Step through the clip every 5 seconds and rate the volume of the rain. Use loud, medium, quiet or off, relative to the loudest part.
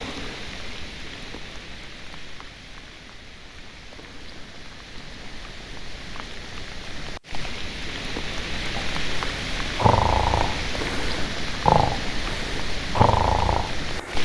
medium, loud, loud.